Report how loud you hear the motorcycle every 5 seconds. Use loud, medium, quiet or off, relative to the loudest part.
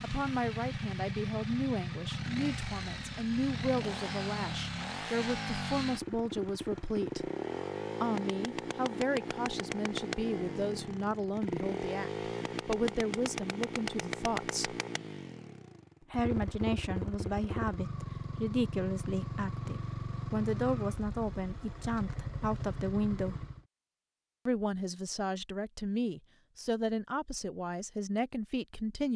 loud, loud, loud, loud, loud, off.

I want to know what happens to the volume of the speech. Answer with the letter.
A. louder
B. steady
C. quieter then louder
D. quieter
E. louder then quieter
B.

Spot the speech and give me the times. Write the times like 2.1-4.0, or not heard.
0.0-7.3, 8.0-14.8, 16.1-23.4, 24.4-29.1.